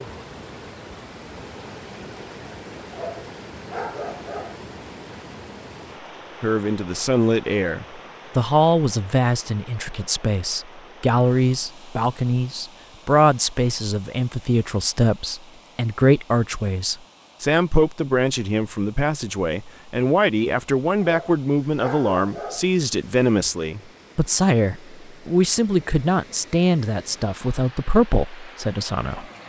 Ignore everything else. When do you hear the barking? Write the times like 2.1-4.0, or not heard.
2.9-4.6, 21.0-22.7.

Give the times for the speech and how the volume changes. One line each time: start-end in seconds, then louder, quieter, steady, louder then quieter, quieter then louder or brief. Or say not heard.
6.4-29.2 steady.